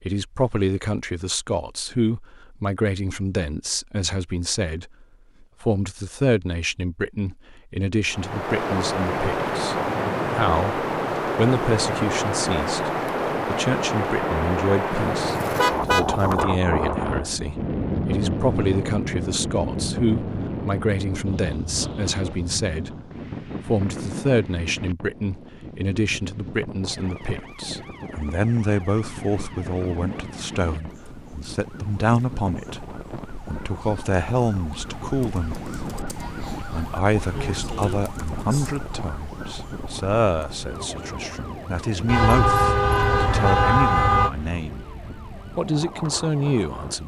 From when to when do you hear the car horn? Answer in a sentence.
The car horn can be heard from 14.9 to 16.4 s and from 42.0 to 44.3 s.